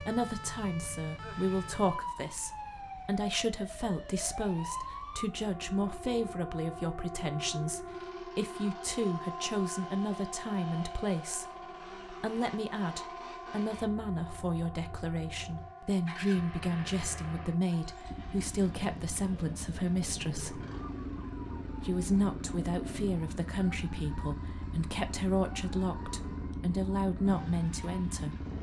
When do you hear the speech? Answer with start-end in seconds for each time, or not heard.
0.0-20.6, 21.8-28.4.